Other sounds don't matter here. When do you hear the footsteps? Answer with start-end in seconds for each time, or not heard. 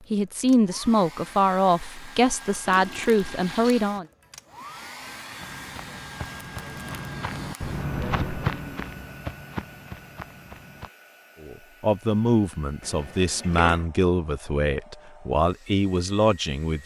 5.4-10.9.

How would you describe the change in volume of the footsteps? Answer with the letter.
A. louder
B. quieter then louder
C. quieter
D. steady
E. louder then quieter
E.